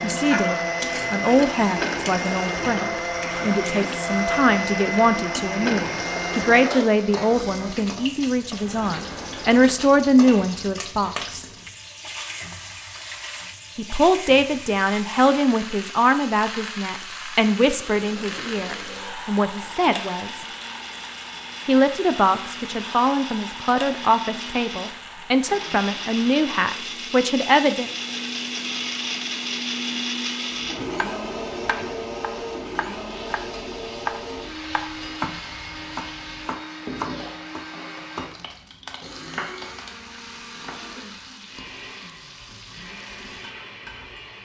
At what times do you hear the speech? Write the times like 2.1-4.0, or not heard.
0.0-11.4, 13.8-20.4, 21.6-27.9.